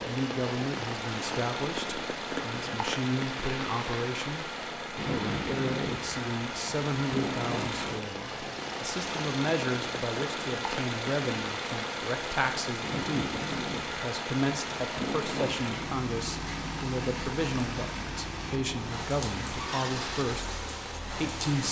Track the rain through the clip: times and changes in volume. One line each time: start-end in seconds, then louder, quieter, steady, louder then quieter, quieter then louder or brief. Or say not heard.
0.0-21.6 steady.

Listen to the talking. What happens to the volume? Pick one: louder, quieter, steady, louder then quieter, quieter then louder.
steady.